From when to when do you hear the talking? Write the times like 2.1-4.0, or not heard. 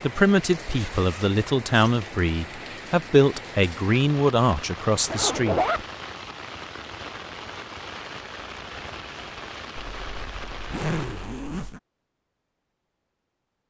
0.0-5.6.